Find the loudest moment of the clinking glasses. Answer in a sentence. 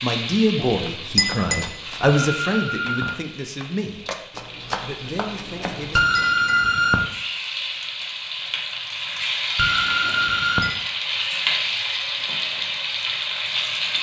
The volume of the clinking glasses peaks at 1 second.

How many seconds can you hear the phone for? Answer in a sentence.
You can hear the phone for 3 seconds altogether.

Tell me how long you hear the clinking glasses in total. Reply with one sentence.
You can hear the clinking glasses for 3 seconds altogether.